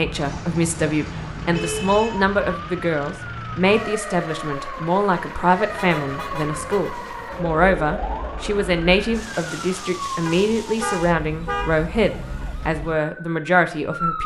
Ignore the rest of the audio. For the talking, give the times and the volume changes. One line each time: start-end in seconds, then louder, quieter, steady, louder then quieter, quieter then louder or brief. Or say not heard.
0.0-14.2 steady.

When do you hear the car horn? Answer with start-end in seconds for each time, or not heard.
1.6-2.2, 5.7-7.0, 10.2-11.9.